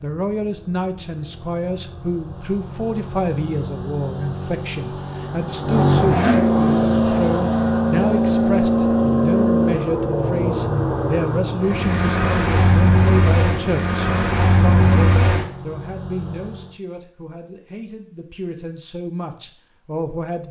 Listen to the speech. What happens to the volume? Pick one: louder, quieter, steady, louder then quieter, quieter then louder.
quieter.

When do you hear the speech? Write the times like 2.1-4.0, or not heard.
0.0-20.4.